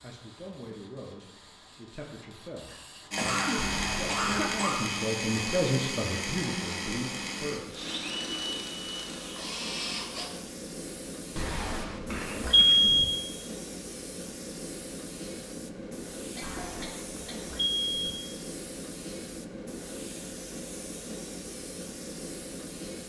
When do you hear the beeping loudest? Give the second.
13 s.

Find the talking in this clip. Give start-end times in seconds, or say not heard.
0.0-7.7.